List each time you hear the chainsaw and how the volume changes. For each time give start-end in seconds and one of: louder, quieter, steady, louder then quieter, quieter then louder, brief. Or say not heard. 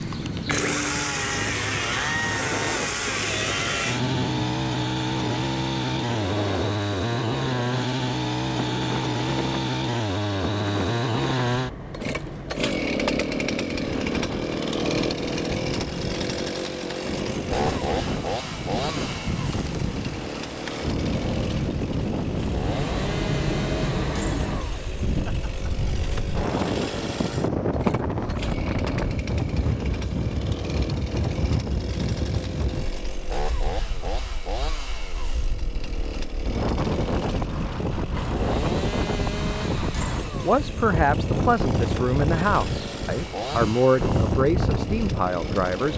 0.0-45.9 quieter.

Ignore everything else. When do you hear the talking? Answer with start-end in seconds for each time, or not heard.
40.4-45.9.